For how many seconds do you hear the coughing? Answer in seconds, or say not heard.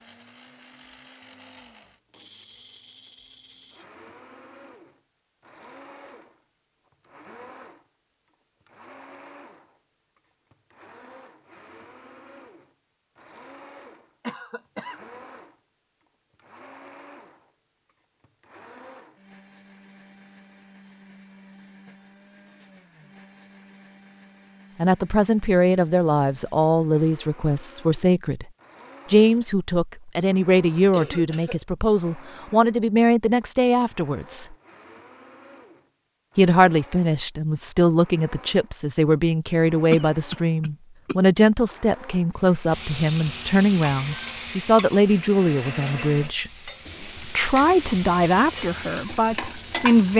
3 s.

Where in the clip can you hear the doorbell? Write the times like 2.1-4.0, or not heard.
not heard.